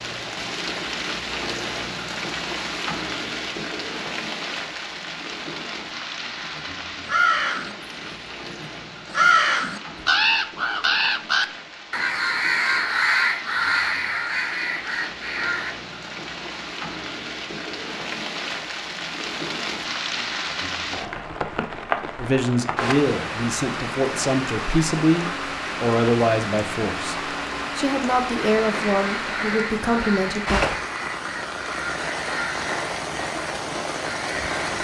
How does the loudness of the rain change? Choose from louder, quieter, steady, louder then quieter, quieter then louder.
quieter then louder.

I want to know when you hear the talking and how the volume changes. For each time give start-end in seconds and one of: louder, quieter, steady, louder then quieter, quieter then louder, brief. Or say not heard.
22.1-30.6 steady.